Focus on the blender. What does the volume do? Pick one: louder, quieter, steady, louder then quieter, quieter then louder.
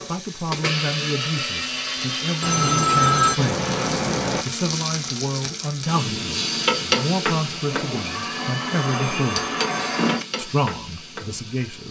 quieter then louder.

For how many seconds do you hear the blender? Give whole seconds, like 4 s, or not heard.
10 s.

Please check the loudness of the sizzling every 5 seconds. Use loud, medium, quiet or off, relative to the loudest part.
medium, loud, medium.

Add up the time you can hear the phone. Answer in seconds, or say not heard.
4 s.